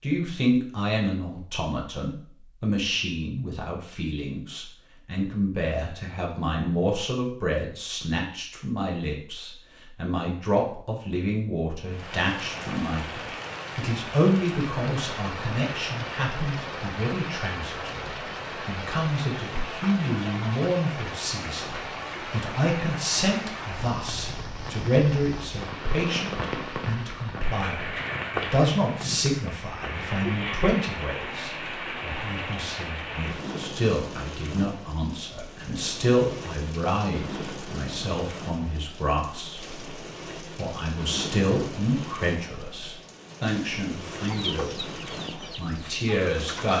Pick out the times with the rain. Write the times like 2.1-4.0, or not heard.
11.8-46.7.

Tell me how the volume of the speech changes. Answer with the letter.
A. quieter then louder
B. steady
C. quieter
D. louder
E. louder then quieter
B.